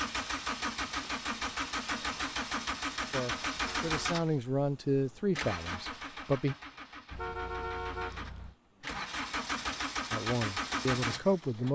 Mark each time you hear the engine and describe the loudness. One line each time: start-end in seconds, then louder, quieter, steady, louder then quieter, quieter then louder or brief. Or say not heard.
0.0-11.7 quieter then louder.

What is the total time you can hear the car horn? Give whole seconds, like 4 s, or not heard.
2 s.